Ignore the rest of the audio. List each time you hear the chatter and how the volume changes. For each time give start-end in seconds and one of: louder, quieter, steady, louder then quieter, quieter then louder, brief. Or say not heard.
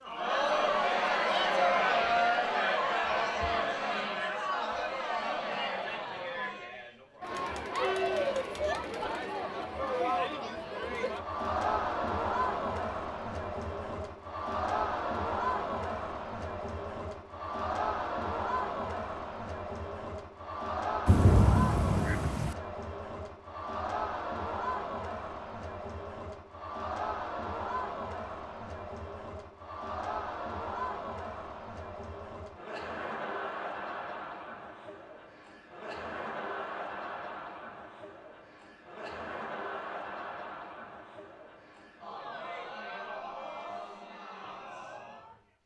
0.0-45.5 quieter.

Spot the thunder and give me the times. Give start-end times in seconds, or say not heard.
21.1-22.6.